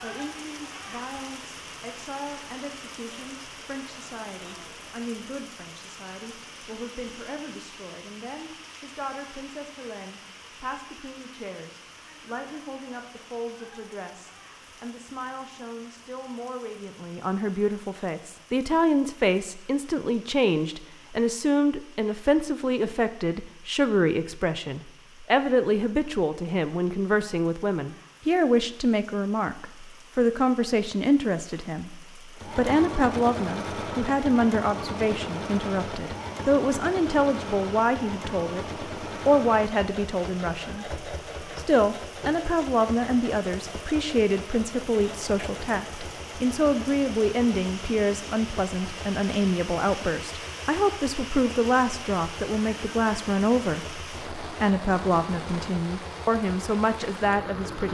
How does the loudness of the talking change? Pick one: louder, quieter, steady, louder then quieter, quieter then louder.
louder.